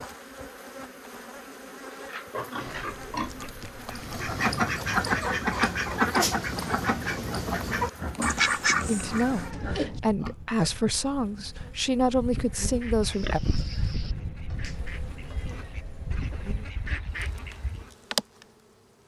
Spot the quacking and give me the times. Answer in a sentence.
The quacking can be heard from 3.9 to 9.4 s and from 12.4 to 17.9 s.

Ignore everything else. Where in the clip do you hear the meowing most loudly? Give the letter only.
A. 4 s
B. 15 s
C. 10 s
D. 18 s
C.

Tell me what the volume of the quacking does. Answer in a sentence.
The loudness of the quacking goes down, then up.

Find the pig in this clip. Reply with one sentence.
You can hear the pig from 1.9 to 3.5 s, from 7.9 to 10.7 s and from 13.0 to 14.2 s.